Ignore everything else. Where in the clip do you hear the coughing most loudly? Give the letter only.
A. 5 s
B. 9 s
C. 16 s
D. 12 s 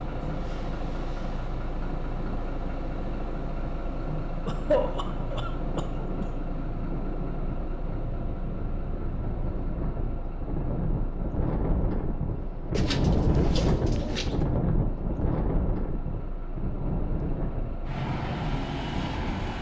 A.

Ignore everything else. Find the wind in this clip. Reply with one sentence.
You can hear the wind from 0.0 to 19.5 s.